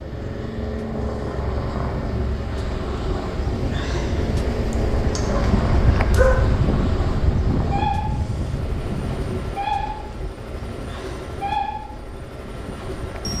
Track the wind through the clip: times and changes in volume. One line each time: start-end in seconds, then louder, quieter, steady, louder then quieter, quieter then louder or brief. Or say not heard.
0.0-13.3 louder then quieter.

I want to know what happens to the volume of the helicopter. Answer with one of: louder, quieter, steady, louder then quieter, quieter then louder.
steady.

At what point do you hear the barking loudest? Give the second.
6 s.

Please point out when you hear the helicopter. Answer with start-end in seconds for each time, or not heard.
0.0-13.3.